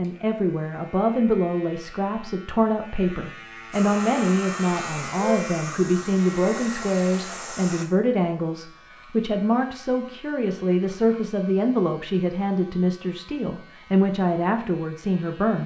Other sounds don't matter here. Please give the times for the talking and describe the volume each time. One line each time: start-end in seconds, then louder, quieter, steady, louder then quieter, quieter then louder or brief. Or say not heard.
0.0-15.6 steady.